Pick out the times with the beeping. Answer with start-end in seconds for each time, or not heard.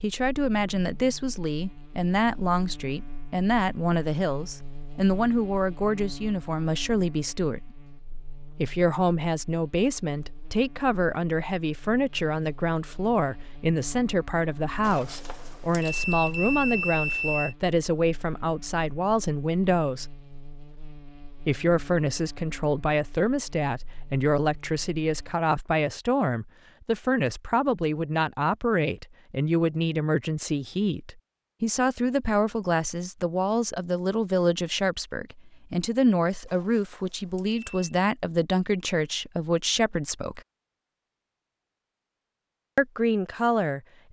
14.8-17.6, 36.5-37.8.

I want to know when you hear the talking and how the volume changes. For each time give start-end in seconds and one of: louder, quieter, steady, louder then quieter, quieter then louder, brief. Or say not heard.
0.0-7.7 steady
8.6-20.1 steady
21.4-40.4 steady
42.8-44.0 brief.